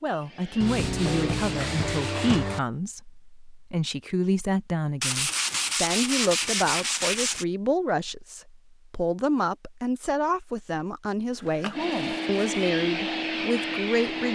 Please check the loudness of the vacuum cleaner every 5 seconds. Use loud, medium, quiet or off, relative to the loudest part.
medium, off, loud.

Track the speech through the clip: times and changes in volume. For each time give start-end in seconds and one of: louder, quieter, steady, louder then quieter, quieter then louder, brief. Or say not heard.
0.0-14.3 steady.